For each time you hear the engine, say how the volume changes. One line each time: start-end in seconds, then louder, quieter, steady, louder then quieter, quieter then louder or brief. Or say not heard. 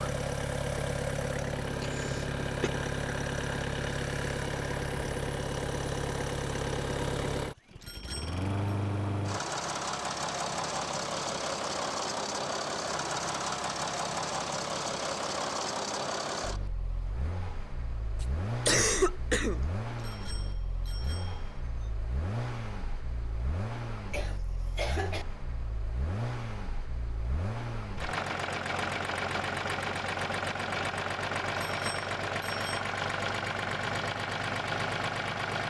0.0-35.6 quieter then louder.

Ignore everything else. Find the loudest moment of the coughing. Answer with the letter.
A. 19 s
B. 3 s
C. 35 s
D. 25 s
A.